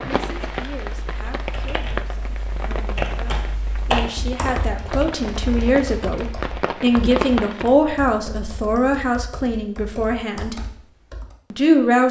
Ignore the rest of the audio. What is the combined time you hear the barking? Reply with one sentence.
You can't hear the barking here.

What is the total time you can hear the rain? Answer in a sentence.
You can hear the rain for 8 seconds altogether.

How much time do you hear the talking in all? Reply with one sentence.
You can hear the talking for 11 seconds altogether.